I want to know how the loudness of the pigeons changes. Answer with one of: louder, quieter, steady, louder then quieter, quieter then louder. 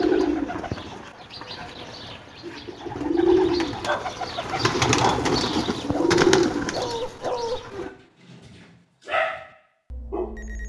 louder.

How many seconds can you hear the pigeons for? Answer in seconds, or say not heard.
8 s.